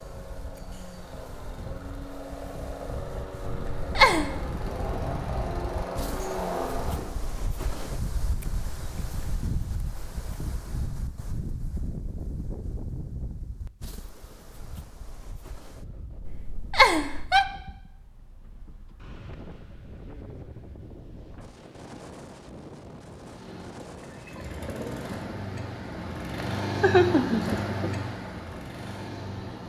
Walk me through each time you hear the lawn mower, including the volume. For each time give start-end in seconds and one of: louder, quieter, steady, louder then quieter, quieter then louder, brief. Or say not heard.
0.0-7.2 louder
23.1-29.6 louder then quieter.